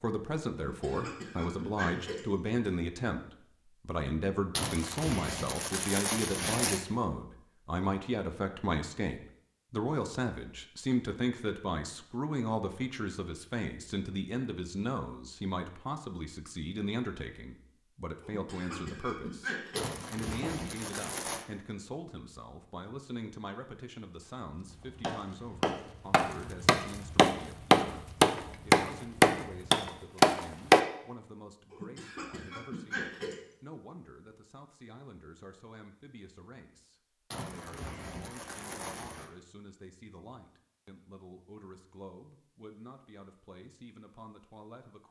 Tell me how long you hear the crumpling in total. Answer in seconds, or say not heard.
6 s.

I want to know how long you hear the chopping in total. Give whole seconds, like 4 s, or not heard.
6 s.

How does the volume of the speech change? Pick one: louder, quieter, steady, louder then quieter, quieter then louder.
quieter.